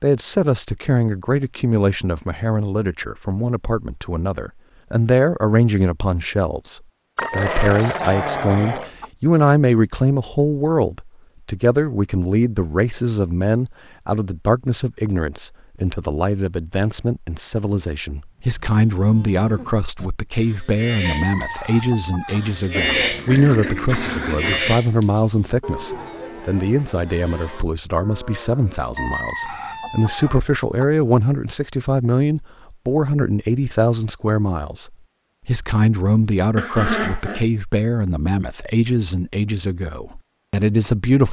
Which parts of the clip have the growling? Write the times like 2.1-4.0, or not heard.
7.2-8.9, 22.7-24.8, 36.5-37.5.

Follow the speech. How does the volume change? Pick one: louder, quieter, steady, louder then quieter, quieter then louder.
steady.